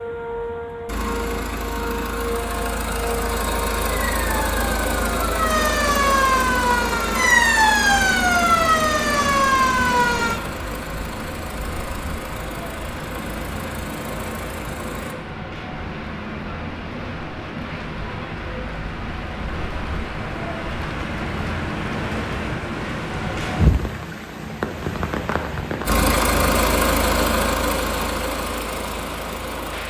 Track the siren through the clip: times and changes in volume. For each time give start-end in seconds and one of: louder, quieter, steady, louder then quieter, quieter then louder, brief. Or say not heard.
0.0-10.4 louder.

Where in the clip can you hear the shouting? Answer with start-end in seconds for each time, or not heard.
not heard.